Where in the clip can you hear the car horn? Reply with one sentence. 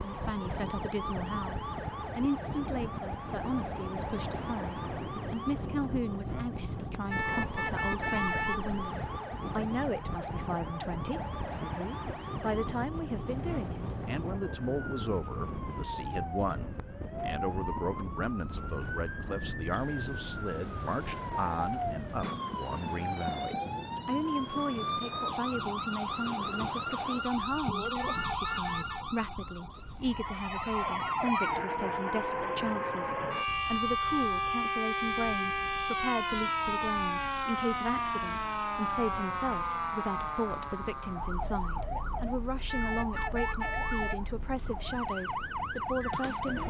The car horn can be heard from 7.1 to 8.7 s, from 27.9 to 29.1 s and from 42.6 to 44.2 s.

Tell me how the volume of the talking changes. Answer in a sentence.
The loudness of the talking stays about the same.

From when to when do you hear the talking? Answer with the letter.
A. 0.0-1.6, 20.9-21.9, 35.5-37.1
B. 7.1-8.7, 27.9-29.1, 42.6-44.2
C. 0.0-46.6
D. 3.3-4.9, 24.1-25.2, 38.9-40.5
C.